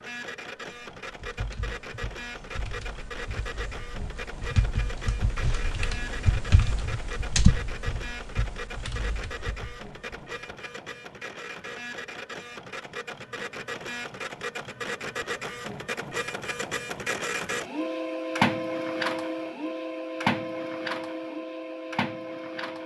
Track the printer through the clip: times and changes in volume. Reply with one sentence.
The printer can be heard from 0.0 to 22.8 s, getting louder.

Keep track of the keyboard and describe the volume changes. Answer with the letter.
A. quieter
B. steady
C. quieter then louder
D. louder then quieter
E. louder
D.